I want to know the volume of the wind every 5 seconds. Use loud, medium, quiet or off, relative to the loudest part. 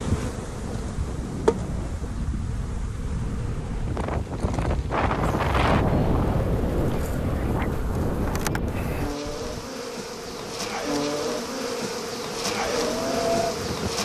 medium, loud, medium.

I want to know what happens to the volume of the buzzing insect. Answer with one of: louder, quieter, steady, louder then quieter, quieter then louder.
quieter then louder.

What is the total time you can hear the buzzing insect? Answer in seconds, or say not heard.
14 s.